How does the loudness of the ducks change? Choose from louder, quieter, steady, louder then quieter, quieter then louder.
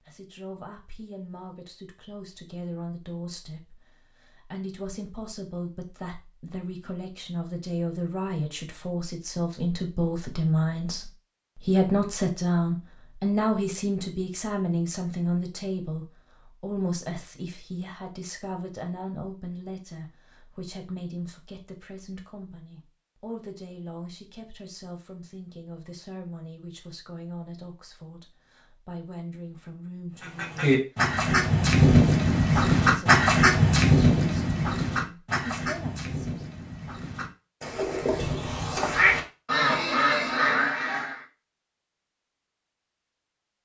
quieter then louder.